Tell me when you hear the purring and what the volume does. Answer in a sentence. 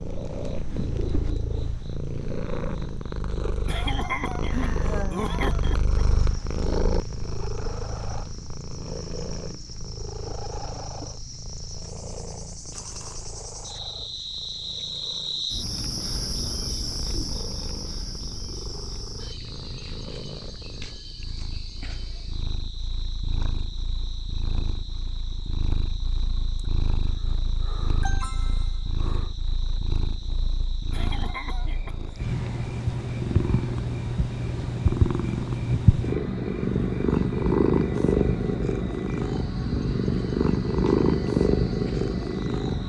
You can hear the purring from 0.0 to 42.8 s, getting quieter then louder.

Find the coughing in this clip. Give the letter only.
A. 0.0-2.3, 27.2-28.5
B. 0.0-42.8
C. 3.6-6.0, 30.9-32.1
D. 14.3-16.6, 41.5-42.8
C.